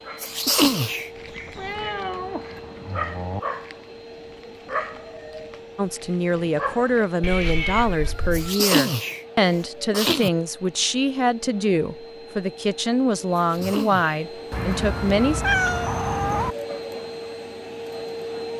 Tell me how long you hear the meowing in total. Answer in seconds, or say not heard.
5 s.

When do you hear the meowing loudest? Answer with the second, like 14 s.
16 s.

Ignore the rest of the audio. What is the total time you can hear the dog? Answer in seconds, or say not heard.
7 s.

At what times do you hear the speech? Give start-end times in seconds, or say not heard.
5.8-15.4.